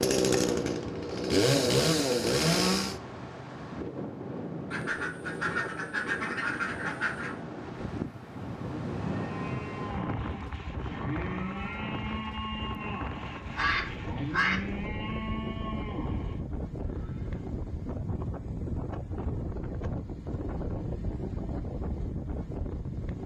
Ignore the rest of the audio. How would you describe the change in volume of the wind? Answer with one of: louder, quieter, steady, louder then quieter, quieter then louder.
steady.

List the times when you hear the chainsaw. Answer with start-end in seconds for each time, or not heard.
0.0-3.0.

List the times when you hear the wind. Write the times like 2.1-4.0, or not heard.
0.0-23.2.